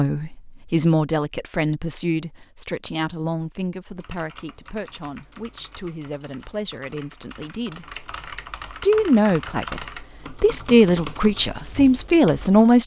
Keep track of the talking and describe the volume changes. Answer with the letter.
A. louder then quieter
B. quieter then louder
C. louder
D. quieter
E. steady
B.